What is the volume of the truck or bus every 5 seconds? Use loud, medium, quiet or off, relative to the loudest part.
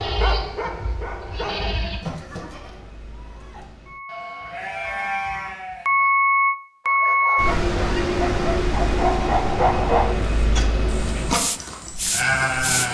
quiet, loud, medium.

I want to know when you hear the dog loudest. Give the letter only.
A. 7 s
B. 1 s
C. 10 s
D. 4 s
C.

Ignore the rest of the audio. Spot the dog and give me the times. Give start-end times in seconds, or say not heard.
0.0-1.8, 6.8-12.2.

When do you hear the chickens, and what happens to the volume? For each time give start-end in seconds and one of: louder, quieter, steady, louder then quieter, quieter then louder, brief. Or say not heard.
not heard.